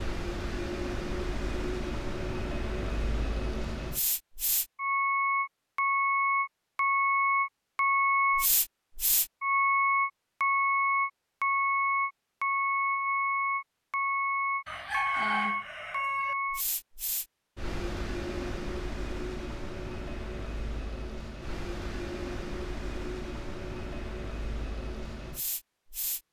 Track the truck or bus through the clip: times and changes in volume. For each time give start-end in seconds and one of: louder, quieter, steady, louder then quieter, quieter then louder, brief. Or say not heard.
0.0-26.2 louder then quieter.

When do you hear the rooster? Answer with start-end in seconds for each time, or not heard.
14.7-16.4.